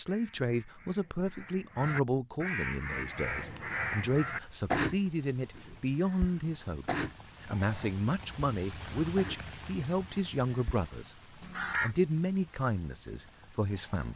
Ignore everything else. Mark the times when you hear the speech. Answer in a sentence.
You can hear the speech from 0.0 to 11.2 s and from 11.8 to 14.1 s.